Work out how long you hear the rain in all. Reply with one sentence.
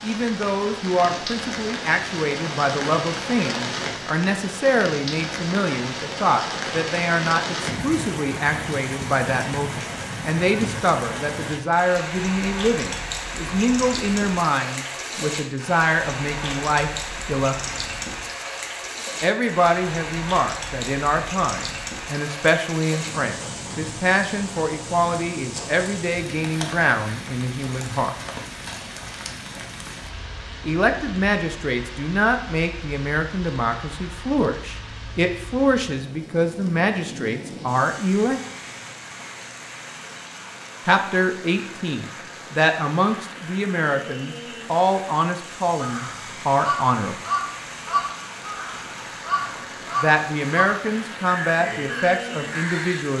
You can hear the rain for 53 seconds altogether.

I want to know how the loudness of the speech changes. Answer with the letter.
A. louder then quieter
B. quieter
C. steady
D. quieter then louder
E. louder
C.